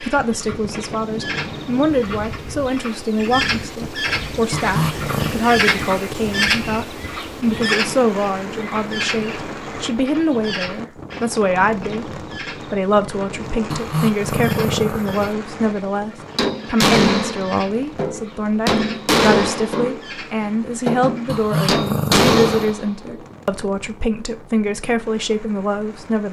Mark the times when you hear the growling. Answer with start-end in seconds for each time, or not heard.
4.5-5.3, 13.7-15.3, 21.2-22.7.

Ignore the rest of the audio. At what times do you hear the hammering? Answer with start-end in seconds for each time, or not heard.
16.4-23.2.